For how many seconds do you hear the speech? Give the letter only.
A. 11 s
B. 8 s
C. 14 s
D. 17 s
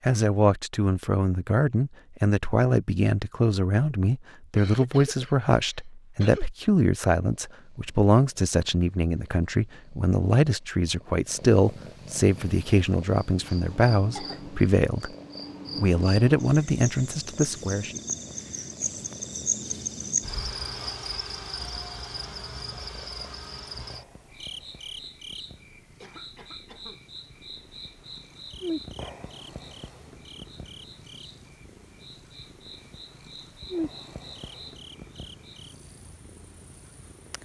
D.